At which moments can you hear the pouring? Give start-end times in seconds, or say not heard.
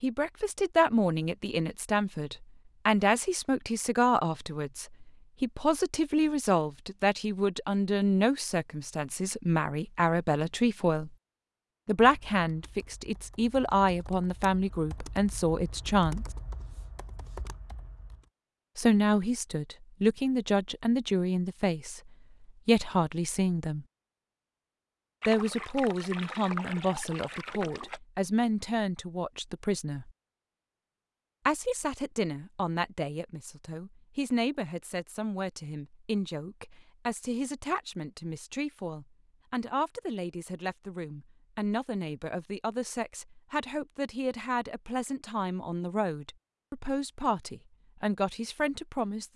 25.2-28.0.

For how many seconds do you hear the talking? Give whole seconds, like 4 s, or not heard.
43 s.